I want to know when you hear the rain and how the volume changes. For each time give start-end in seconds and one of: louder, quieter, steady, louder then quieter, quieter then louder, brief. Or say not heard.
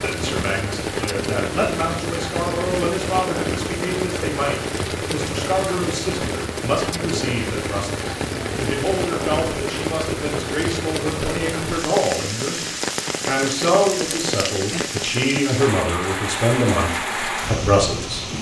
0.0-18.3 steady.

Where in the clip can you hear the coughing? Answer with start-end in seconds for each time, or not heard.
not heard.